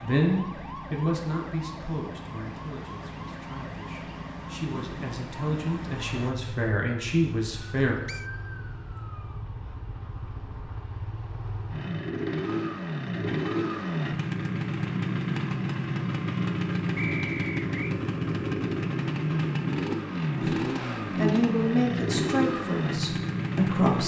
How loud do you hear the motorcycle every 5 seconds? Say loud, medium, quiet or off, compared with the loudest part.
quiet, quiet, loud, loud, loud.